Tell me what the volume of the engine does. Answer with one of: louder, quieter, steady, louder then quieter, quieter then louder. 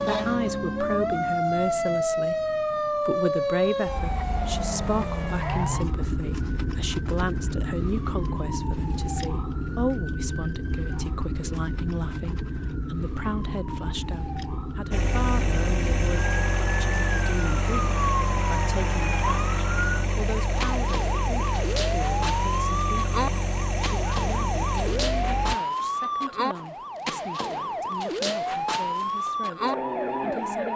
steady.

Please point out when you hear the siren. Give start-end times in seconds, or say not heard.
0.0-30.7.